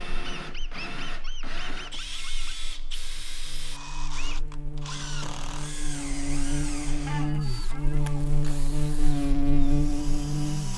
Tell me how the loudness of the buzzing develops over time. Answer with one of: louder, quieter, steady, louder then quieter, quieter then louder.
louder.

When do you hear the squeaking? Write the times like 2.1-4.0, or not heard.
0.3-2.7, 7.0-8.4.